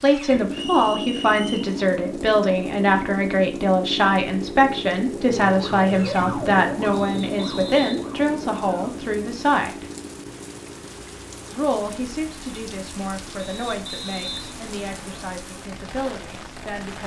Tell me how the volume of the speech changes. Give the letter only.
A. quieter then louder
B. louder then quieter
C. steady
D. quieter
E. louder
D.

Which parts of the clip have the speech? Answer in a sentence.
You can hear the speech from 0.0 to 9.8 s and from 11.5 to 17.0 s.